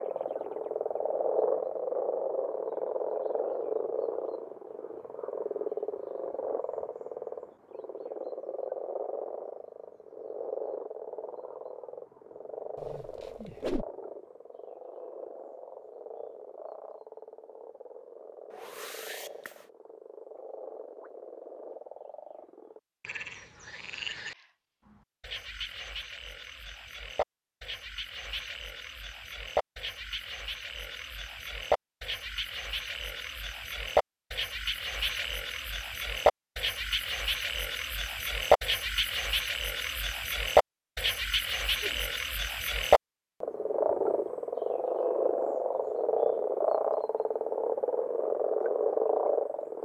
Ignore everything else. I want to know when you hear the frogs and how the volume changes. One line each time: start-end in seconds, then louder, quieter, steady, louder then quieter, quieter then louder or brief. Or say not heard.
0.0-49.8 quieter then louder.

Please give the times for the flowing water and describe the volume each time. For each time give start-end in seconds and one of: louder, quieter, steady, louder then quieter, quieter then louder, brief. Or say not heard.
not heard.